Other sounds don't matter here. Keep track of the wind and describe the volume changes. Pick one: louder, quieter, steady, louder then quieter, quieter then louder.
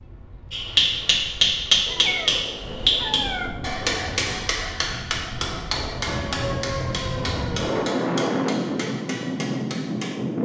louder.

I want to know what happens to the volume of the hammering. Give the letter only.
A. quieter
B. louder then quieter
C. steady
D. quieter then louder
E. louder
A.